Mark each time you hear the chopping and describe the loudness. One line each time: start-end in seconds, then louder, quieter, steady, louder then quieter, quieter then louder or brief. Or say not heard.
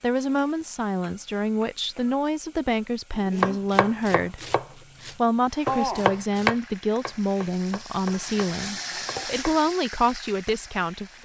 3.2-9.8 louder then quieter.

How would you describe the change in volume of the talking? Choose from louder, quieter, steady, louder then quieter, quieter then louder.
steady.